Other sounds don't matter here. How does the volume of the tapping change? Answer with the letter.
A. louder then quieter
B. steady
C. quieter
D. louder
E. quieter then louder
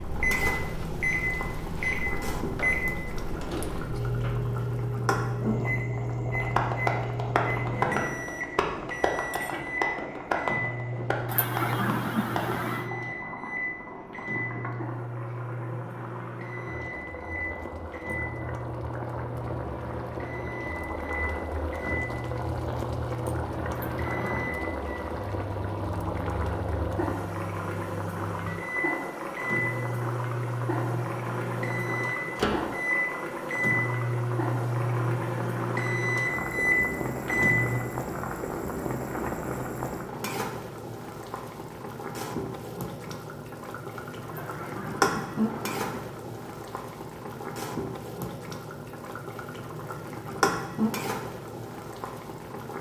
C.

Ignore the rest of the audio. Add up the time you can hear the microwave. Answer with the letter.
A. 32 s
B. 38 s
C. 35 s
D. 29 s
B.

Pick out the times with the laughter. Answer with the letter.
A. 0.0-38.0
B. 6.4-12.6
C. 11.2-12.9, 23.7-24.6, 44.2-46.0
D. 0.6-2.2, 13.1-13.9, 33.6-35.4
C.